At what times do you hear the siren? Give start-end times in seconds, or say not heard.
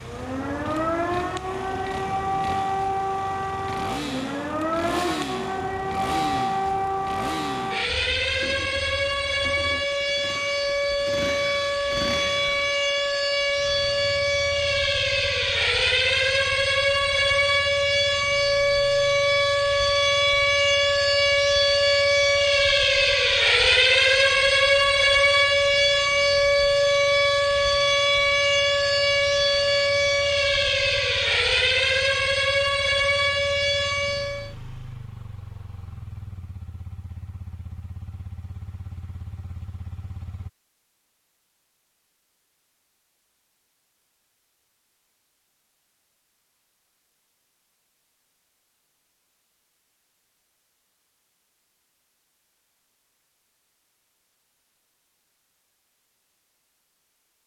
0.0-34.5.